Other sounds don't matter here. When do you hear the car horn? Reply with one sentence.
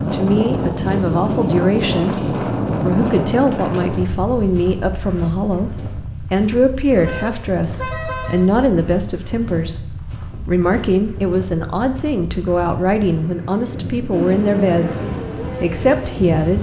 The car horn can be heard from 7.0 to 8.5 s.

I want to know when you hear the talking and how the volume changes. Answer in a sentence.
The talking can be heard from 0.1 to 16.5 s, at a steady volume.